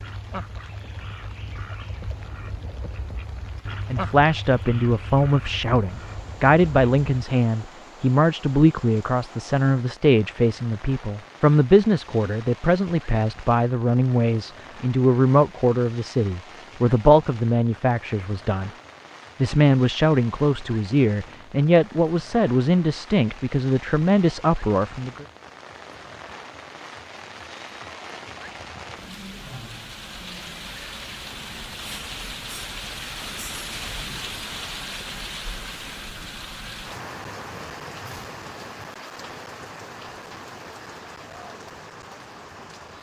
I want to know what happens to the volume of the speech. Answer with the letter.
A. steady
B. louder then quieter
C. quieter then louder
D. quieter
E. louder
A.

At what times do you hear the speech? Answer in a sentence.
You can hear the speech from 3.9 to 18.7 s and from 19.4 to 25.2 s.